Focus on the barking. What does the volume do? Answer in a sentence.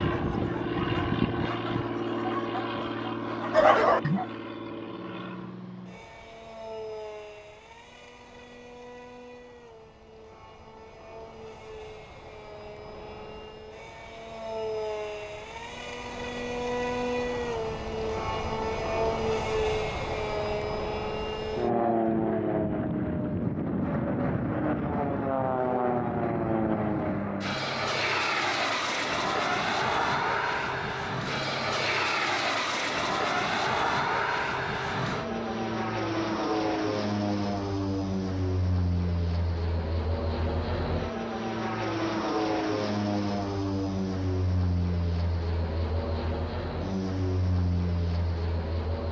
The loudness of the barking goes up.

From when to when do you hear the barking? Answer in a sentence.
You can hear the barking from 0.0 to 4.2 s.